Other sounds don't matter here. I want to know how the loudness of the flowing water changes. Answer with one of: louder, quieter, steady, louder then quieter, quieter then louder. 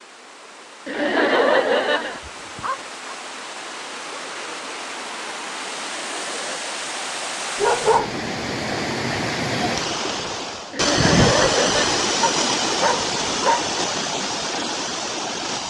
louder.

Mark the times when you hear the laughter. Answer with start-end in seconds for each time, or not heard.
0.8-2.2, 5.9-6.8, 10.7-12.1.